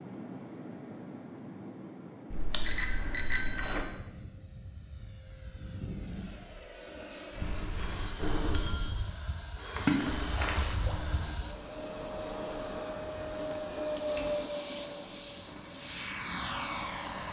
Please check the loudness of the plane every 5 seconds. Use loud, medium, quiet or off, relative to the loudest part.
quiet, medium, loud, loud.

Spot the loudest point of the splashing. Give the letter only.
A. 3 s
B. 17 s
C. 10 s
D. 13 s
C.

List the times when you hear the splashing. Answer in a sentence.
The splashing can be heard from 2.3 to 3.9 s and from 9.8 to 11.3 s.